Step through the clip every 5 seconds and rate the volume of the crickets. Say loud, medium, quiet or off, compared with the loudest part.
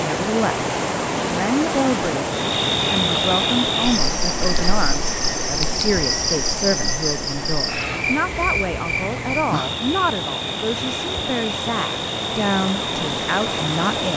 loud, loud, medium.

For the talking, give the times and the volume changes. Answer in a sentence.
You can hear the talking from 0.0 to 14.1 s, at a steady volume.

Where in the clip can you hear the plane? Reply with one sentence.
You can't hear the plane here.